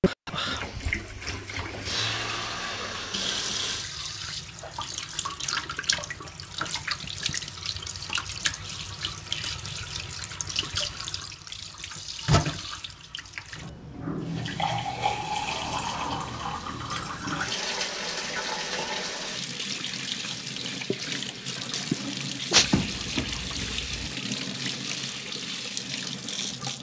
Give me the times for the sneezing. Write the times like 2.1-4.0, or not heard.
21.9-22.6.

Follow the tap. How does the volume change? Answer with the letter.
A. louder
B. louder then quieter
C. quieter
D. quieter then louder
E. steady
E.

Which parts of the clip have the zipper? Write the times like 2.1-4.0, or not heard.
22.6-24.1.